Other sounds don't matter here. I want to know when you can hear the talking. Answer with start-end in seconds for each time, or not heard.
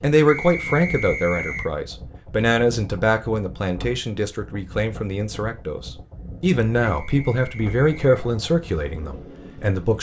0.0-9.9.